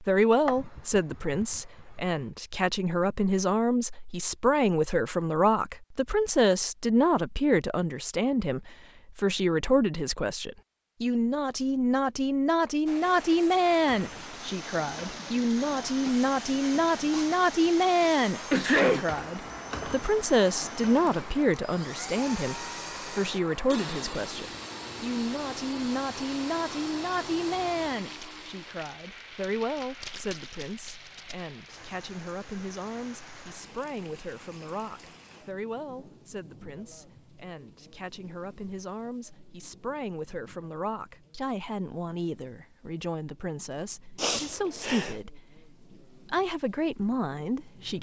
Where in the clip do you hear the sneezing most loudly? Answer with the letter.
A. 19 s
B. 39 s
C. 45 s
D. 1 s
A.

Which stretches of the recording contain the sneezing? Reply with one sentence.
The sneezing can be heard from 0.5 to 1.6 s, from 18.5 to 19.1 s and from 44.1 to 45.1 s.